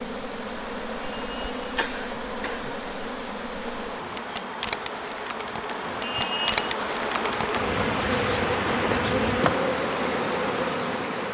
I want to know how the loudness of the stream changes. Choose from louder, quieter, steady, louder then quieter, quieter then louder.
louder.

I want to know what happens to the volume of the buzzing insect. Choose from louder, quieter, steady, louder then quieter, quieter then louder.
louder.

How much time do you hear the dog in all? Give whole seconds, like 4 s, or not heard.
not heard.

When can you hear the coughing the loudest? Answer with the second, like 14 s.
6 s.